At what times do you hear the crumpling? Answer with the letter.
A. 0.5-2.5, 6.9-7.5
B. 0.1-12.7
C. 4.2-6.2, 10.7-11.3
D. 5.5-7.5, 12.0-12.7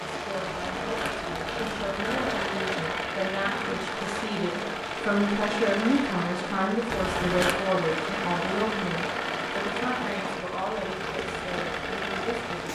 A.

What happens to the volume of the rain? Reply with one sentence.
The volume of the rain stays about the same.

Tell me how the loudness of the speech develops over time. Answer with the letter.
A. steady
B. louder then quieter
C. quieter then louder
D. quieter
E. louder
B.